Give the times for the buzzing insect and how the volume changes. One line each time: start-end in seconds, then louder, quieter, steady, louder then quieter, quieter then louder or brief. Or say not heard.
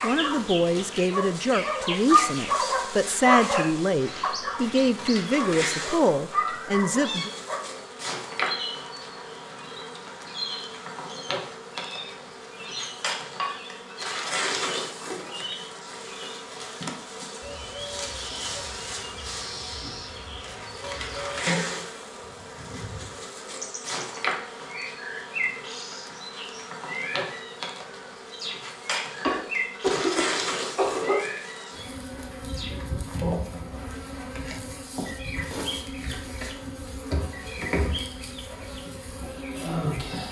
0.0-40.2 steady.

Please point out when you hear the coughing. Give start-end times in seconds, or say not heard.
29.2-31.2.